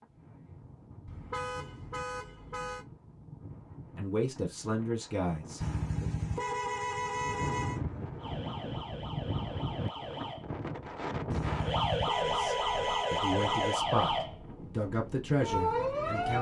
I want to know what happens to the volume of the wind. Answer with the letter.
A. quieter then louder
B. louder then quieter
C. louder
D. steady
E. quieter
B.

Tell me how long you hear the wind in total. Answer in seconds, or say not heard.
16 s.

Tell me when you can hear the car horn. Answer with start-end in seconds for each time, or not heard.
1.1-2.9, 5.6-7.8, 11.3-13.8.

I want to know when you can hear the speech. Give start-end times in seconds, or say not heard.
4.0-6.1, 12.2-16.3.